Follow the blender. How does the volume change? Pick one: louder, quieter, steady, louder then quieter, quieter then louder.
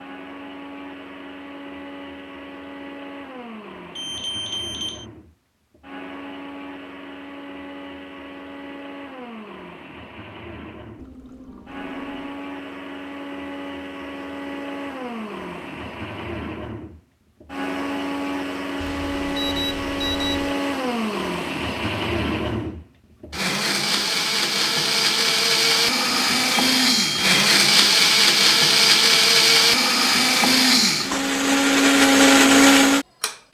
louder.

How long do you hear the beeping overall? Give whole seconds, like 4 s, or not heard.
4 s.